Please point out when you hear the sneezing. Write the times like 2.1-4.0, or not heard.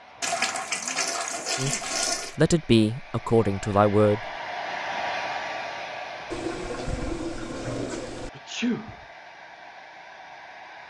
1.6-2.0, 8.3-8.9.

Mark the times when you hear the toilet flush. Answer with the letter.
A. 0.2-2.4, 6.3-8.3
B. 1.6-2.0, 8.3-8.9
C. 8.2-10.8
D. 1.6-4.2
A.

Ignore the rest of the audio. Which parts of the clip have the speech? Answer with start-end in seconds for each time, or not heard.
1.6-4.2.